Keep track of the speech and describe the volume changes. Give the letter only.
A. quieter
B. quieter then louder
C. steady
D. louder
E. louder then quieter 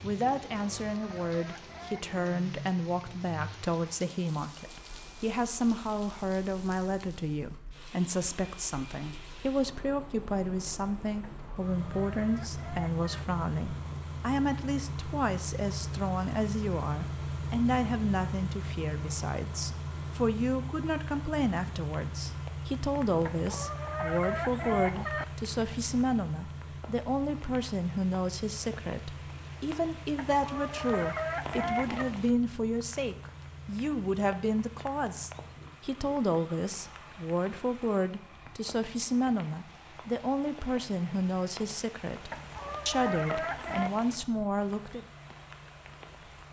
C.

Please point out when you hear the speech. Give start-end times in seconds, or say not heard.
0.0-45.0.